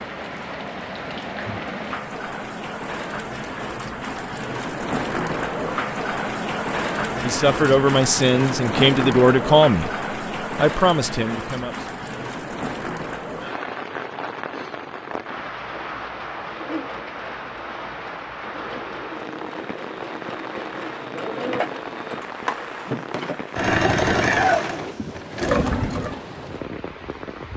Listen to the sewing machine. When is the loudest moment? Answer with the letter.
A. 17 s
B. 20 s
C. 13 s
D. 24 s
D.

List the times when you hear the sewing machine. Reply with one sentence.
The sewing machine can be heard from 15.2 to 26.2 s.